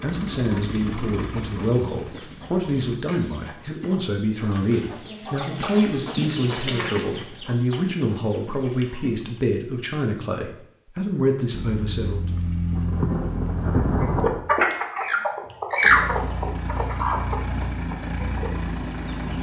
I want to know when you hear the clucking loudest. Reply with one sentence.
The loudest moment of the clucking is at 16 seconds.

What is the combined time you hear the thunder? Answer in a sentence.
The thunder can be heard for 3 seconds in total.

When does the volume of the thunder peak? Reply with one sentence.
The volume of the thunder peaks at 14 seconds.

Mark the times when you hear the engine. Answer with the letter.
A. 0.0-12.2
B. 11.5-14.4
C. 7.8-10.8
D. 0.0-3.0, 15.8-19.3
D.